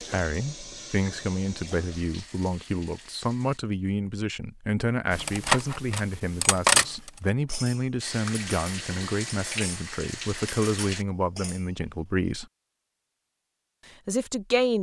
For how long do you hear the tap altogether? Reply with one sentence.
You can hear the tap for 7 seconds altogether.